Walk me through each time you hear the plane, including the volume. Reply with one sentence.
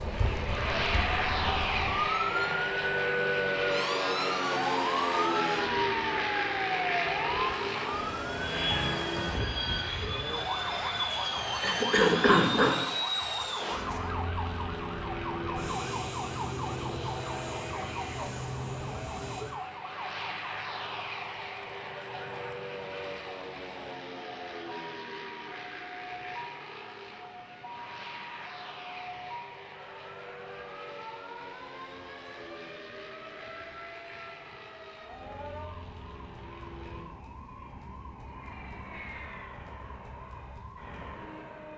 You can hear the plane from 0.0 to 41.7 s, getting quieter.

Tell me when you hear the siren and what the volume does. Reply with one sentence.
You can hear the siren from 0.0 to 41.7 s, getting quieter.